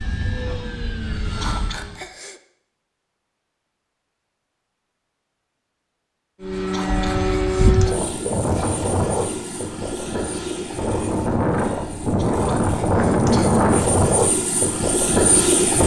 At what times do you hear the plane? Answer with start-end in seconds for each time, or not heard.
0.0-2.0, 6.4-15.8.